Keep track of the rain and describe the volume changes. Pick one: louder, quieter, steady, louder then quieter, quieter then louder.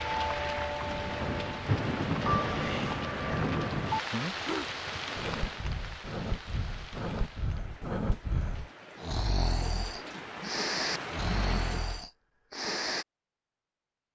quieter then louder.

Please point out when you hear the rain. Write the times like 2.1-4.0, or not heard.
0.0-12.1.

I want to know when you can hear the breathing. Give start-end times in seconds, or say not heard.
1.1-13.1.